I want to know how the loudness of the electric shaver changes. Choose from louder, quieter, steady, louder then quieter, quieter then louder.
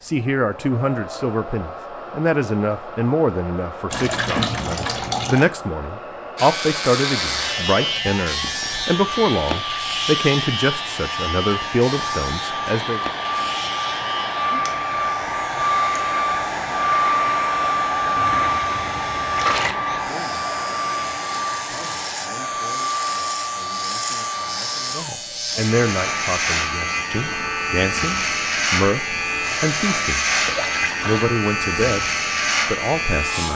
quieter then louder.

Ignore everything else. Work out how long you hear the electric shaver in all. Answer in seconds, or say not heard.
27 s.